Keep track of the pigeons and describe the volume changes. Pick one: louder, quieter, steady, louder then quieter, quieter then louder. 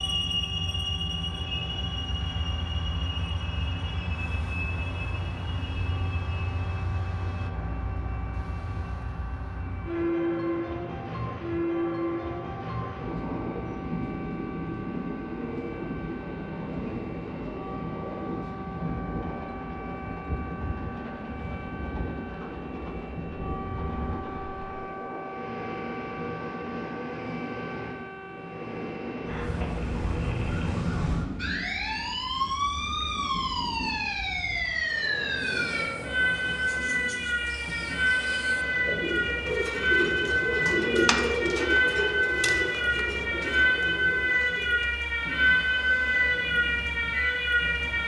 louder then quieter.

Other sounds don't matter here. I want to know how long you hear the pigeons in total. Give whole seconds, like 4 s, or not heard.
10 s.